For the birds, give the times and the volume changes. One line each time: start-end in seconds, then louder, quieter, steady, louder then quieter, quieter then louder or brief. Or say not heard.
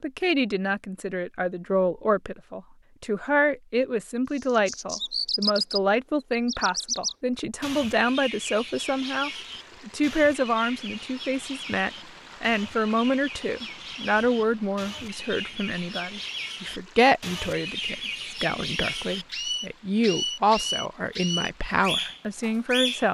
4.3-23.0 quieter then louder.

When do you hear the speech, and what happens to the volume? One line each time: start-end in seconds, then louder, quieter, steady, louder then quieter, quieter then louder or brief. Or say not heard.
0.0-23.0 steady.